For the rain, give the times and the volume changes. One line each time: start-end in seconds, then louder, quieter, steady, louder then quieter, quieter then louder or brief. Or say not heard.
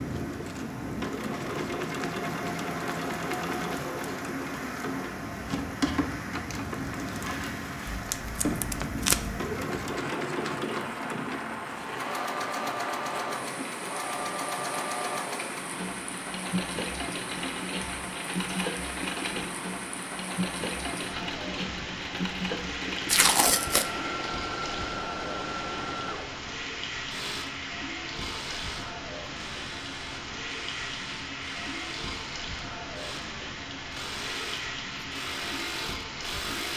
0.0-36.7 steady.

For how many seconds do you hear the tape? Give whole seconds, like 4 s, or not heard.
2 s.